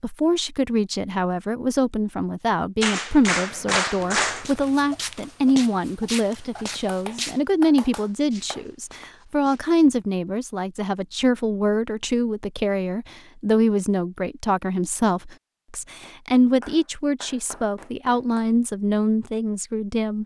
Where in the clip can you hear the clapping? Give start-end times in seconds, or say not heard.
2.8-4.5, 6.8-8.7, 16.0-18.4.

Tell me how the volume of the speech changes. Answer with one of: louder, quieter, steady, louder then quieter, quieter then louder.
steady.